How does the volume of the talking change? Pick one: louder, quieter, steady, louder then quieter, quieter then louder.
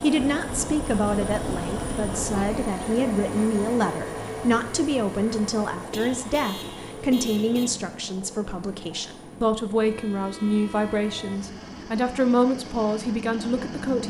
steady.